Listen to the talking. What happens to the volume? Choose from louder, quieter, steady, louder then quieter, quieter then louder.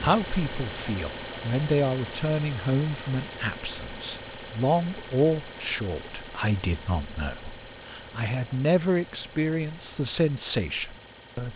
steady.